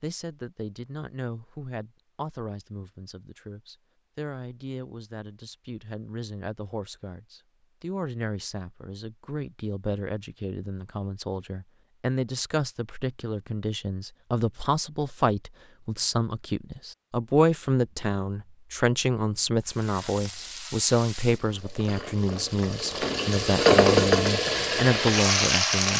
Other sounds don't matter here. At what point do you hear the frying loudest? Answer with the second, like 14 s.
24 s.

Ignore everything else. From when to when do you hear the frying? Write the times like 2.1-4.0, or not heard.
19.6-25.9.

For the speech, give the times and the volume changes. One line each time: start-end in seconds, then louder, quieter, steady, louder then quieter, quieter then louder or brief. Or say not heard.
0.0-25.9 louder.